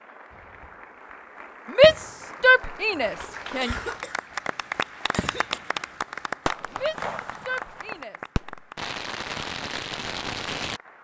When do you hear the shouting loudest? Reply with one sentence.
The volume of the shouting peaks at 2 seconds.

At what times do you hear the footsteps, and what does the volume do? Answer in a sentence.
The footsteps can't be heard in this clip.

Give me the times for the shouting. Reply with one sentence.
The shouting can be heard from 1.7 to 3.8 s and from 6.7 to 8.2 s.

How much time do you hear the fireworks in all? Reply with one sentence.
The fireworks can be heard for 7 seconds in total.